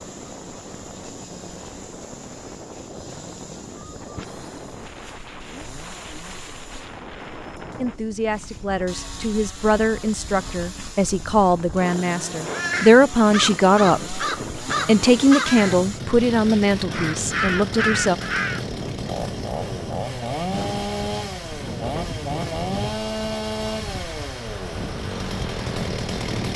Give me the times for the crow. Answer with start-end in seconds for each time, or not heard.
12.5-18.6.